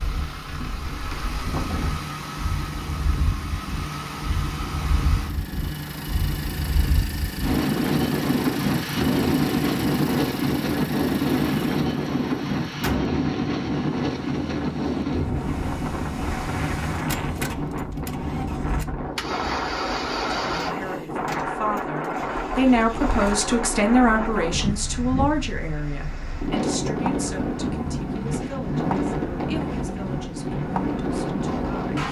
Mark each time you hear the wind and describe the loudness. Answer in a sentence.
The wind can be heard from 0.0 to 32.0 s, getting louder then quieter.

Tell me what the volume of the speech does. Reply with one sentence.
The volume of the speech goes down.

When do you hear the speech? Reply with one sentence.
You can hear the speech from 20.3 to 32.0 s.